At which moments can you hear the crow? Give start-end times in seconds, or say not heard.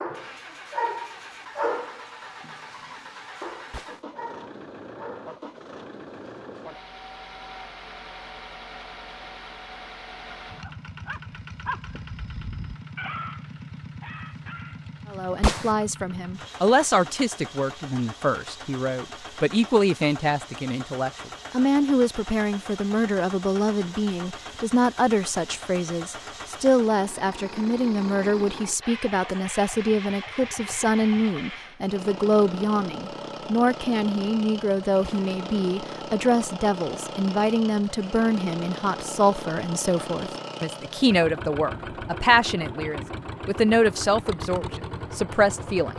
not heard.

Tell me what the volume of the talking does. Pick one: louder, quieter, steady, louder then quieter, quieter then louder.
steady.